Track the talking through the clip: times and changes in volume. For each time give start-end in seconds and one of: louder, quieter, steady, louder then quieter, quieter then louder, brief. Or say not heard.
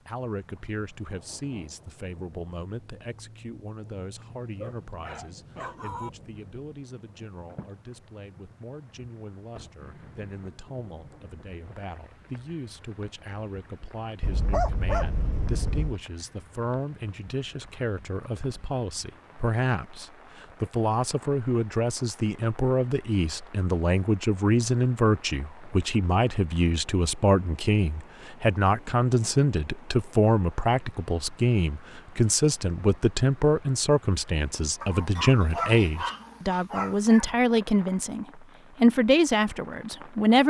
0.1-40.4 louder.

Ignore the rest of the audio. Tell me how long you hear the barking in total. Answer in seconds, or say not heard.
6 s.